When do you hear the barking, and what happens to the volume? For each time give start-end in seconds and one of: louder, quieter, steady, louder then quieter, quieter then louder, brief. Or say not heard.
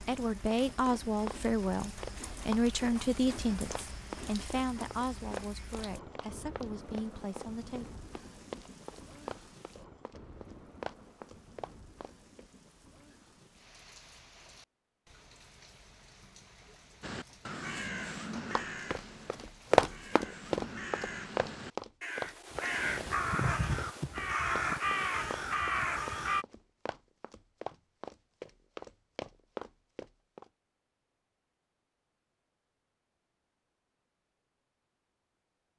not heard.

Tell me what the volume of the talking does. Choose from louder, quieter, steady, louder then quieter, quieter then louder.
quieter.